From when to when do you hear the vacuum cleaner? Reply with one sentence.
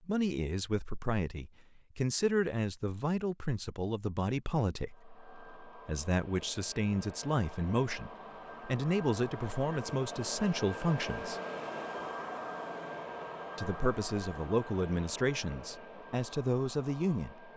You can hear the vacuum cleaner from 4.8 to 17.5 s.